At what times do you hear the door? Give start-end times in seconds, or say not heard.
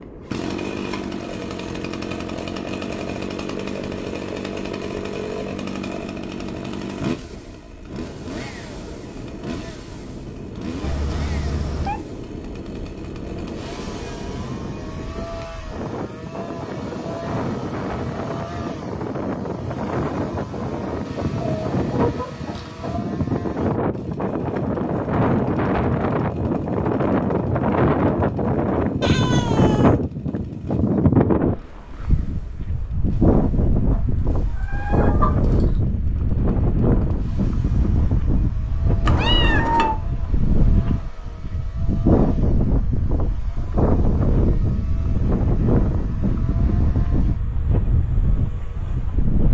not heard.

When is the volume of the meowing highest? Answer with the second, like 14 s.
40 s.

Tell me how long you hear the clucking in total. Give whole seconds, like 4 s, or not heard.
4 s.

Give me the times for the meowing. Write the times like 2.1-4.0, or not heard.
10.8-12.0, 29.0-30.0, 39.0-40.0.